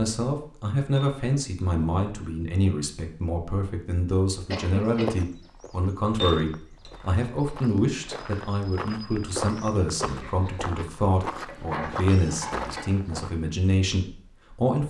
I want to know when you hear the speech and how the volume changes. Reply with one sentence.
The speech can be heard from 0.0 to 14.8 s, at a steady volume.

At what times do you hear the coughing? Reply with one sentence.
The coughing can be heard from 4.5 to 5.2 s and from 10.0 to 10.4 s.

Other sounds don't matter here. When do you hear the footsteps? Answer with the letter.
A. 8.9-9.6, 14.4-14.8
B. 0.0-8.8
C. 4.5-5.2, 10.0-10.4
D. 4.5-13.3
D.